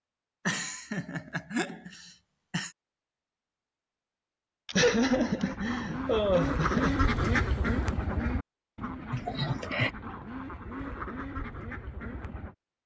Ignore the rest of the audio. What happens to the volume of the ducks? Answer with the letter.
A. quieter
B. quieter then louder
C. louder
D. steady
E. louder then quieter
E.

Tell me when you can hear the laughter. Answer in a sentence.
The laughter can be heard from 0.5 to 2.7 s, from 4.7 to 7.0 s and from 9.1 to 9.9 s.